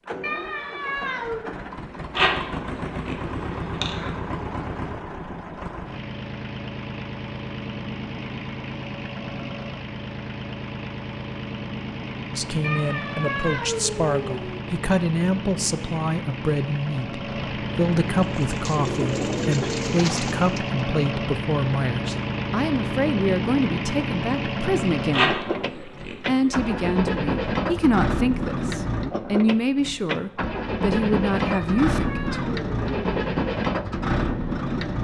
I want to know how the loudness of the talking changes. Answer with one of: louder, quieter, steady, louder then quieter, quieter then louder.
steady.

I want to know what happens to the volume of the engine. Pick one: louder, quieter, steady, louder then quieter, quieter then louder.
louder.